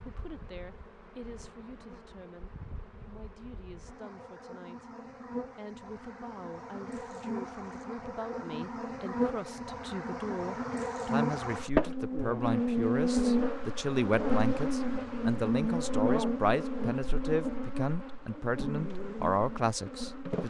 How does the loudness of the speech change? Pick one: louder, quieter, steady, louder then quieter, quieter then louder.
louder.